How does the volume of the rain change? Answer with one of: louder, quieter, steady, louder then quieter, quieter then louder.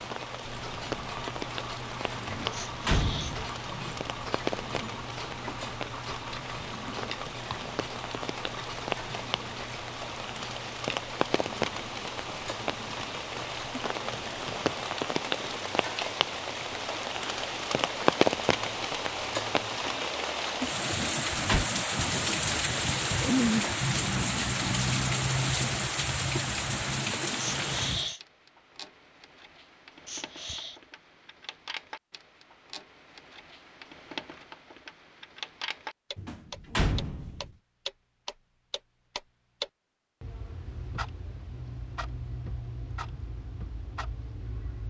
louder.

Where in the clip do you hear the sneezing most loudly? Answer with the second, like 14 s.
28 s.